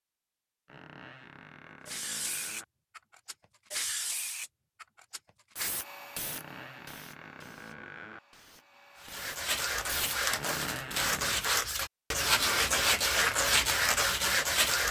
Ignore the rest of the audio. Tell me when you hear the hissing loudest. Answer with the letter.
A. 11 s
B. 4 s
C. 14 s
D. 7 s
B.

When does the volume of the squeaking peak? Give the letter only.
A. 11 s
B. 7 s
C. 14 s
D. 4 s
A.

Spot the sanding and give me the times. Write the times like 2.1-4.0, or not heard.
8.9-14.8.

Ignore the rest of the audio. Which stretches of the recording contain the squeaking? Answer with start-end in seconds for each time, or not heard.
0.7-2.6, 6.2-8.2, 10.3-11.4.